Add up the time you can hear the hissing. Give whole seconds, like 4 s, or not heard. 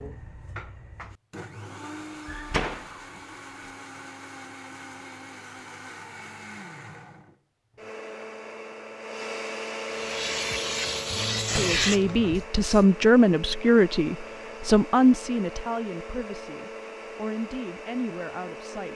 3 s.